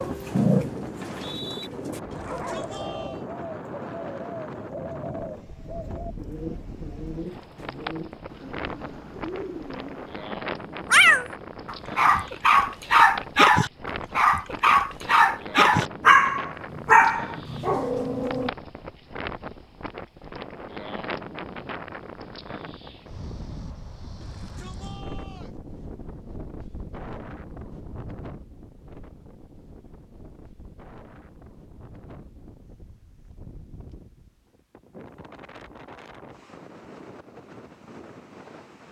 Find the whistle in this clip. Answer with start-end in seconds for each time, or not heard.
0.9-1.7.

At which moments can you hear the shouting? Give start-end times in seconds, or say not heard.
2.1-3.2, 24.2-25.6.